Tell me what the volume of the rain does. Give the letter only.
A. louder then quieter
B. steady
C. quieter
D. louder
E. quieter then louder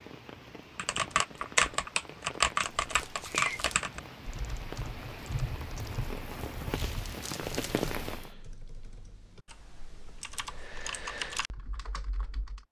D.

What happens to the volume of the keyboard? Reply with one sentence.
The loudness of the keyboard goes down, then up.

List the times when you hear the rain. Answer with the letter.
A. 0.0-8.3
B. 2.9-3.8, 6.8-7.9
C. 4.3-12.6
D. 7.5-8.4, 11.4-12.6
A.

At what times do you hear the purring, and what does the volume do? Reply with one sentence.
The purring can't be heard in this clip.